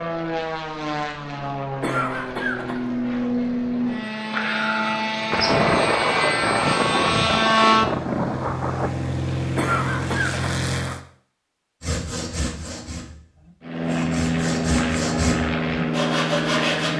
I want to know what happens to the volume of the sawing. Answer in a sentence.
The loudness of the sawing goes down, then up.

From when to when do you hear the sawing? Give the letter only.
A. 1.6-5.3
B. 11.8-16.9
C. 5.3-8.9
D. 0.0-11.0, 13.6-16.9
B.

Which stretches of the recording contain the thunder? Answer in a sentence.
The thunder can be heard from 5.3 to 8.9 s.